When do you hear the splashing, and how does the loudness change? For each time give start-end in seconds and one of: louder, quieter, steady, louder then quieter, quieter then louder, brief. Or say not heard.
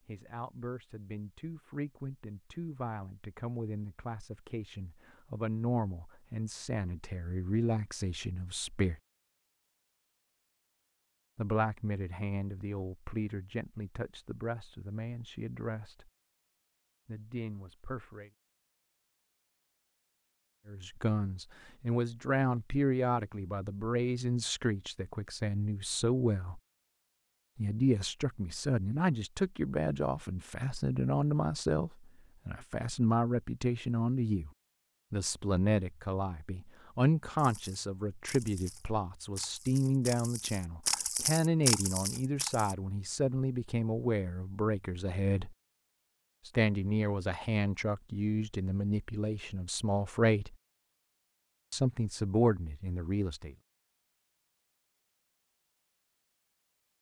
37.4-42.8 louder.